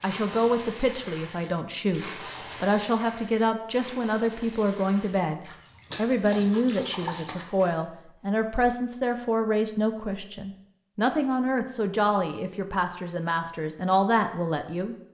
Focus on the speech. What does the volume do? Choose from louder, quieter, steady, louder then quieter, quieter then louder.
steady.